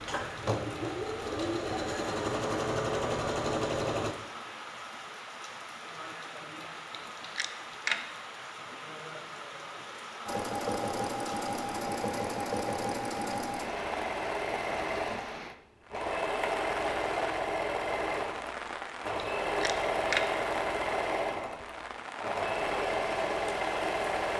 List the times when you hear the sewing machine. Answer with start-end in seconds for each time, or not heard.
0.0-4.2, 10.2-24.3.